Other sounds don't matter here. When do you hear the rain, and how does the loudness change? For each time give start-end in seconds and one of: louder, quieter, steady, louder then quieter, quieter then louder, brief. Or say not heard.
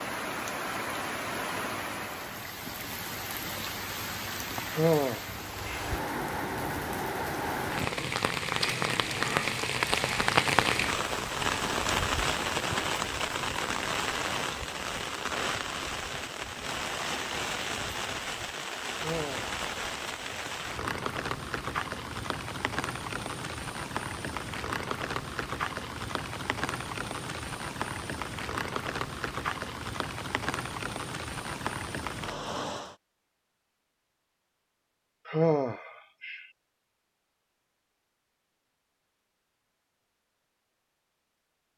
0.0-33.0 louder then quieter.